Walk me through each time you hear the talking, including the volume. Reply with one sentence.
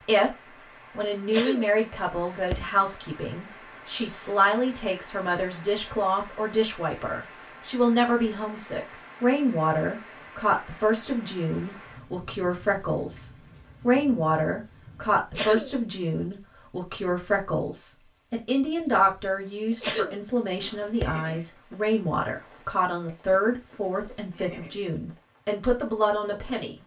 You can hear the talking from 0.1 to 26.8 s, at a steady volume.